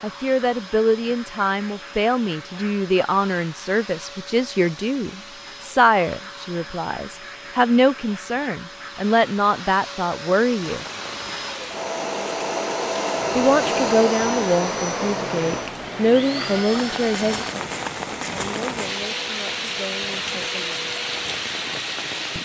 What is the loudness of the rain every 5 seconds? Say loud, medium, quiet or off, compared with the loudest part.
off, off, medium, loud, loud.